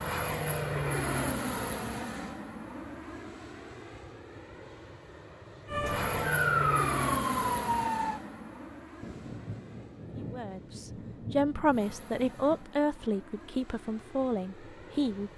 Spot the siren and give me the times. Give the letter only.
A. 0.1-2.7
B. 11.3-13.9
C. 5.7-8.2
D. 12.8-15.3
C.